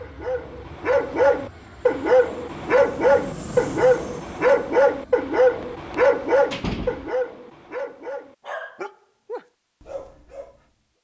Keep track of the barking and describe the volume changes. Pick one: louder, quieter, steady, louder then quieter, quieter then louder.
quieter.